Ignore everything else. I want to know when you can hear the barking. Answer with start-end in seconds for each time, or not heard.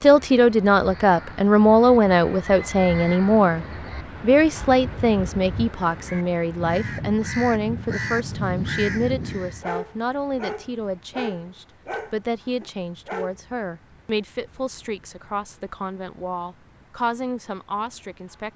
9.6-13.3.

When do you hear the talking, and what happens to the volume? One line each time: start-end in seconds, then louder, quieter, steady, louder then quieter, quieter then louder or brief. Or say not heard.
0.0-18.5 quieter.